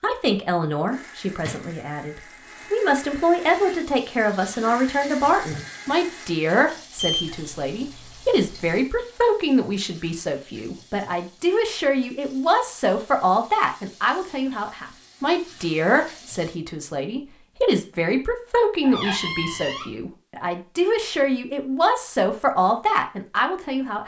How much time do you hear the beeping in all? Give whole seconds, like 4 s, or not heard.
2 s.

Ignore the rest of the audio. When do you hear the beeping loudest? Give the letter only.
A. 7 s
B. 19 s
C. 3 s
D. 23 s
A.